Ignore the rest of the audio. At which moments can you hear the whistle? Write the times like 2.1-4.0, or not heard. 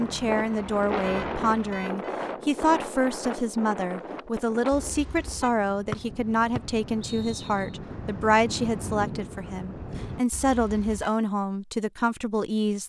5.9-7.7.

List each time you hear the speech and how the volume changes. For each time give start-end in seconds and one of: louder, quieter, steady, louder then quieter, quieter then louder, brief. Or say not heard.
0.0-12.8 steady.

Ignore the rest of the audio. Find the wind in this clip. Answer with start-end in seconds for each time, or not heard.
0.0-10.2.